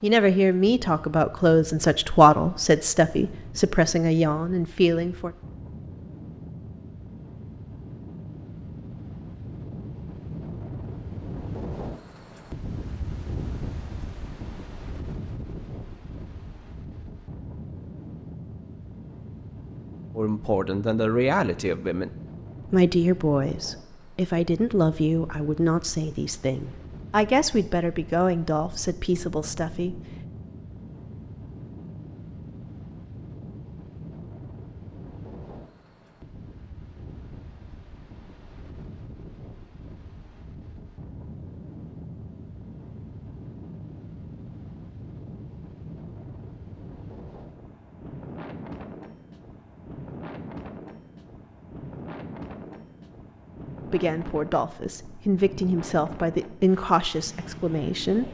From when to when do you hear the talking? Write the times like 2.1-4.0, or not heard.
0.0-5.3, 20.1-30.0, 53.9-58.2.